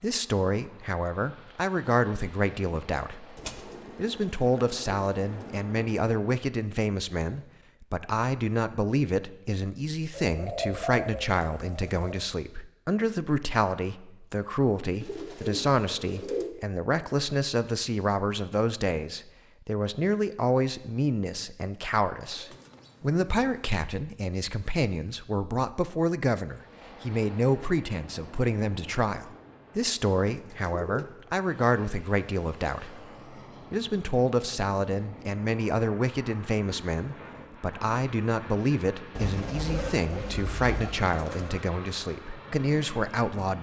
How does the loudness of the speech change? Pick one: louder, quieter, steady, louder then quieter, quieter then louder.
steady.